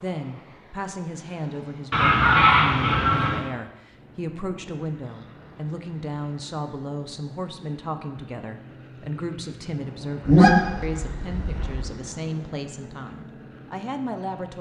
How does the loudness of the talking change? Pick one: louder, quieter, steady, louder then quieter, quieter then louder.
steady.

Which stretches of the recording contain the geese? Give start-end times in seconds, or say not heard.
1.9-3.5, 10.2-11.9.